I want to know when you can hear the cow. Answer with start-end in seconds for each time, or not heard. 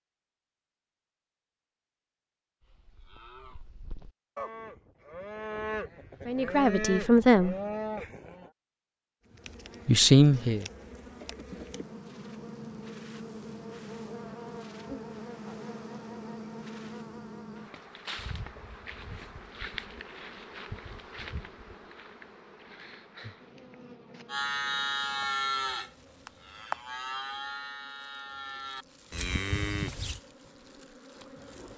2.6-8.5, 24.2-30.2.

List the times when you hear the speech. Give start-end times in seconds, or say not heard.
6.2-7.5, 9.8-10.7.